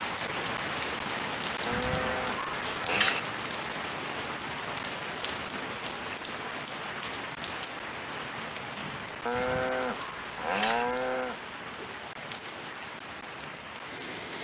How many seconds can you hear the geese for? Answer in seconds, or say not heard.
3 s.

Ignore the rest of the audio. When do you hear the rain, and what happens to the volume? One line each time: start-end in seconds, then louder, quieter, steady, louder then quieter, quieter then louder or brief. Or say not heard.
0.0-14.4 quieter.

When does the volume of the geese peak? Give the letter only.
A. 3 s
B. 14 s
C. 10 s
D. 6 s
A.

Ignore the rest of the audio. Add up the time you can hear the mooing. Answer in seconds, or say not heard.
4 s.